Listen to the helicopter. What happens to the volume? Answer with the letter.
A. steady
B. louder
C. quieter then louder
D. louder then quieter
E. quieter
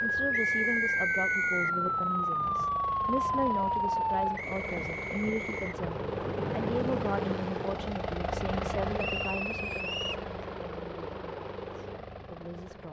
D.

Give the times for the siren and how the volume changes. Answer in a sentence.
You can hear the siren from 0.0 to 4.3 s, at a steady volume.